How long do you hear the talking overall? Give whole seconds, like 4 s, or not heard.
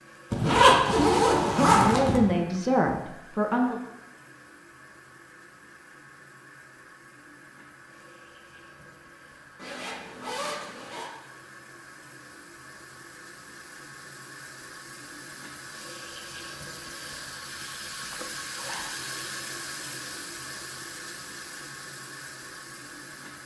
2 s.